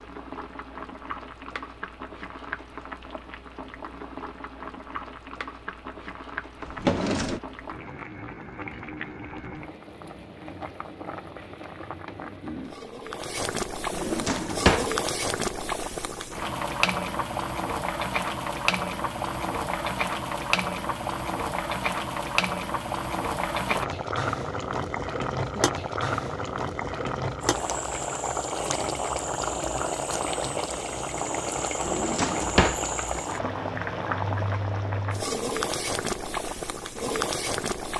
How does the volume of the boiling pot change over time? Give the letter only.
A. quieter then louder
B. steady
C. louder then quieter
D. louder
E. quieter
D.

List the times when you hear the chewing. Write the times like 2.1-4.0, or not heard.
not heard.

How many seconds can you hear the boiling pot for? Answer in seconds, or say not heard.
38 s.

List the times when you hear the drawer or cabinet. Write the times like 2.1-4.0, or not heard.
6.6-7.4, 13.9-14.9, 31.8-32.8.